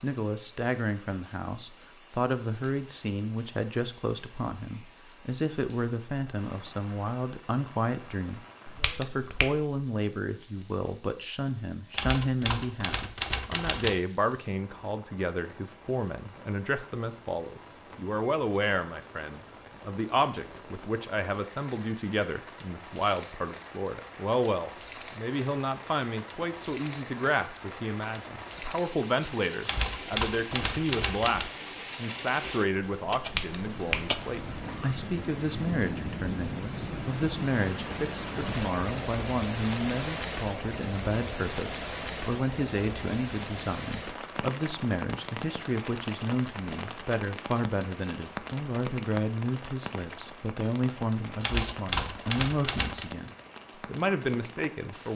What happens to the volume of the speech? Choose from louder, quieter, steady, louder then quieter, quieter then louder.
steady.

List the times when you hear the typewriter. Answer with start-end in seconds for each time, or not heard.
11.9-14.0, 29.6-31.5, 51.4-53.0.